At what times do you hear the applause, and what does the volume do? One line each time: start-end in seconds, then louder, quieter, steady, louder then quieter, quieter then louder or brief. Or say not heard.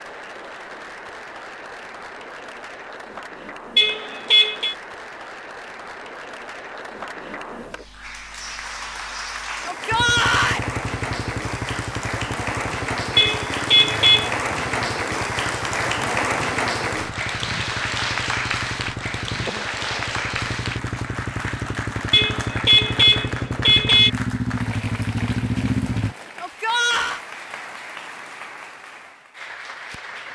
0.0-30.3 louder then quieter.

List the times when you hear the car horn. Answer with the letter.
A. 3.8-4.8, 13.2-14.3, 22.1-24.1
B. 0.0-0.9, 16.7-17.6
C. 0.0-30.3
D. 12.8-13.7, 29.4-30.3
A.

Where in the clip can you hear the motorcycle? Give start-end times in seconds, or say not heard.
9.9-26.1.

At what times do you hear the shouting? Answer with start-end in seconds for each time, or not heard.
9.7-10.6, 26.4-27.2.